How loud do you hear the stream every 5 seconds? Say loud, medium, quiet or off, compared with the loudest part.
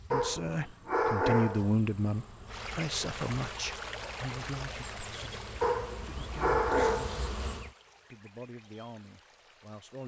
loud, medium.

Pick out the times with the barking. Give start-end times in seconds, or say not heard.
0.1-1.8, 5.6-7.2.